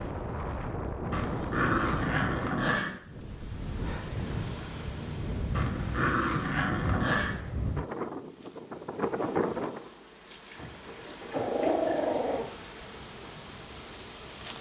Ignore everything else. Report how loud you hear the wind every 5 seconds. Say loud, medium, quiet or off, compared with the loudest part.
loud, loud, quiet.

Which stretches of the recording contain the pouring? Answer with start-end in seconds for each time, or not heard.
10.2-11.6.